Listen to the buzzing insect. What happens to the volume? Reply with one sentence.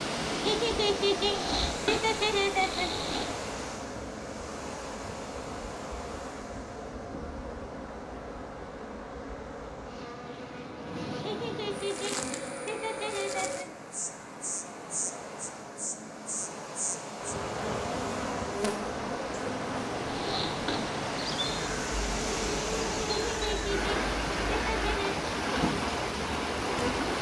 The loudness of the buzzing insect goes up.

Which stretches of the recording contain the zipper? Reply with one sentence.
You can hear the zipper from 1.2 to 3.2 s and from 20.1 to 20.9 s.